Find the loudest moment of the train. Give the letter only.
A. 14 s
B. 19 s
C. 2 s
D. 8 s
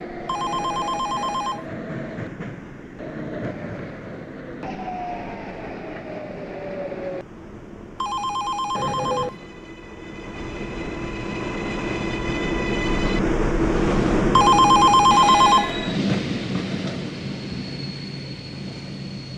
A.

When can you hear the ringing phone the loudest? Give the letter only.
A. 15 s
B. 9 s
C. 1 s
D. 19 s
A.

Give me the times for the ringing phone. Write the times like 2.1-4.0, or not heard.
0.2-1.6, 8.0-9.3, 14.3-15.7.